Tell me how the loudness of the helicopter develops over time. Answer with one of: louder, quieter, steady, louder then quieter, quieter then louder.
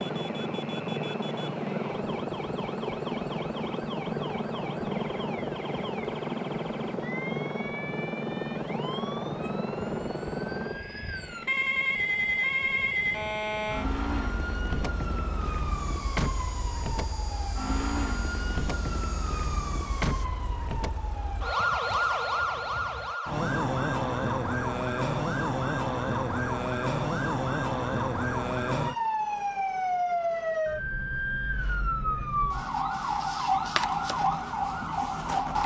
quieter.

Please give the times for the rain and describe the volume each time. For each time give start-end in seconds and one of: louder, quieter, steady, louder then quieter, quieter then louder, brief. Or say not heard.
not heard.